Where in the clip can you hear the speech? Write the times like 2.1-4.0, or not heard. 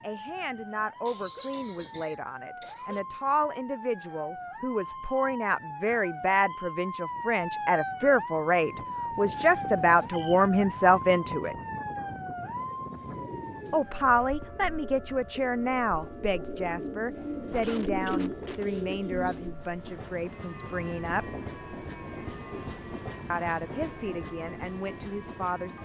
0.0-11.6, 13.7-21.2, 23.3-25.8.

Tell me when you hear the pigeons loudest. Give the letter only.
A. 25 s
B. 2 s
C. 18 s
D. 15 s
C.